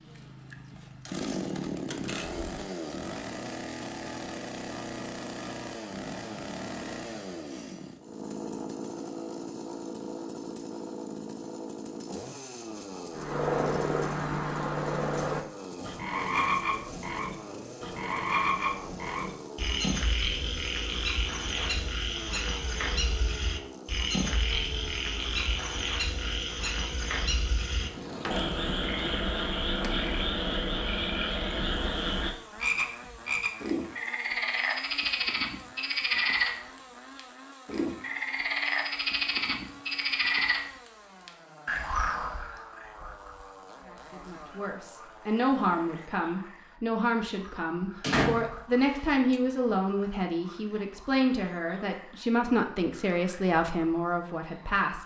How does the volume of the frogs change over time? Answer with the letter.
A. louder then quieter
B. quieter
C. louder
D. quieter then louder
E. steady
B.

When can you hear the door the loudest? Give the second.
48 s.